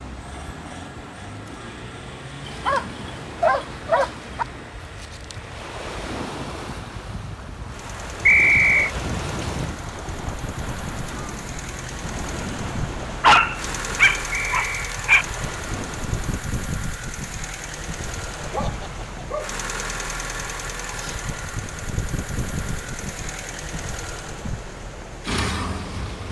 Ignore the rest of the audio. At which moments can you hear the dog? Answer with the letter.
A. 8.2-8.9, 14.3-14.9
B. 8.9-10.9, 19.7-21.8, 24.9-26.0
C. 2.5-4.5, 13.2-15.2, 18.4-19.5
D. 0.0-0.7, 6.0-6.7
C.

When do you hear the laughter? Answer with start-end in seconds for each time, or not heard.
not heard.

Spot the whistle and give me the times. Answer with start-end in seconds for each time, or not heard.
8.2-8.9, 14.3-14.9.